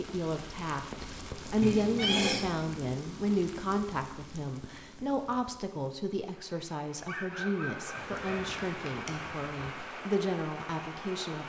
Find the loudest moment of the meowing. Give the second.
2 s.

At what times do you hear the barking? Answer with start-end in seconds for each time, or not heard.
7.0-8.5.